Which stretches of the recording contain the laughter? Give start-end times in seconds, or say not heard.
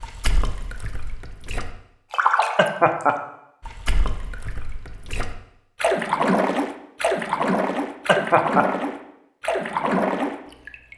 2.5-3.1, 8.1-8.7.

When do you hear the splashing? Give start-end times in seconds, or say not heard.
0.0-10.9.